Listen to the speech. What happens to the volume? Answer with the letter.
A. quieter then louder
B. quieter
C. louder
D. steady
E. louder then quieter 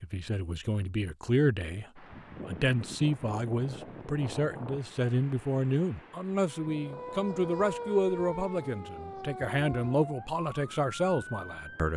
D.